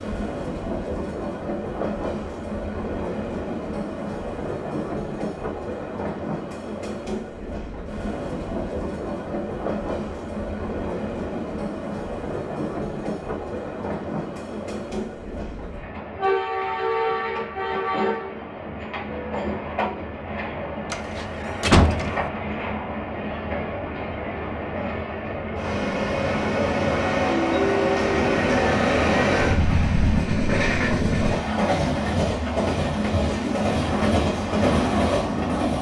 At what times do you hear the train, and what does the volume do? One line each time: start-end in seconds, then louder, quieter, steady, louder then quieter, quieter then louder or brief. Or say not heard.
0.0-35.7 louder.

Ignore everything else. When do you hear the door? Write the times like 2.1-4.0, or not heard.
20.9-22.2.